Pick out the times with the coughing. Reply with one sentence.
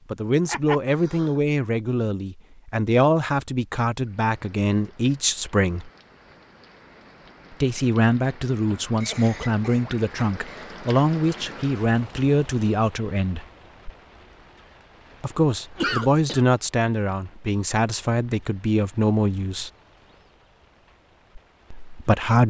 The coughing can be heard from 0.5 to 1.4 s, from 9.0 to 10.7 s and from 15.8 to 16.4 s.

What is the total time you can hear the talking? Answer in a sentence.
The talking can be heard for 17 seconds in total.